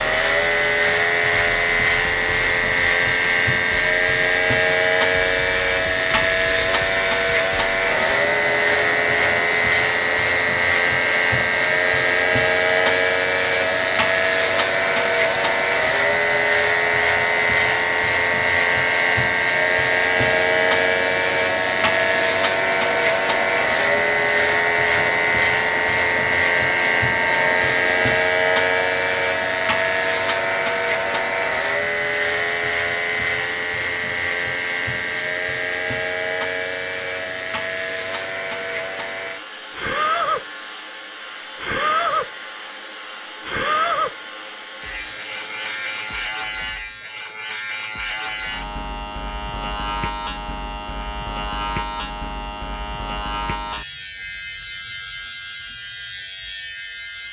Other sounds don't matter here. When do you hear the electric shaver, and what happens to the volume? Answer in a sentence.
You can hear the electric shaver from 0.0 to 57.2 s, getting quieter.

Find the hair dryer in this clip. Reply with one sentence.
You can hear the hair dryer from 0.0 to 46.3 s.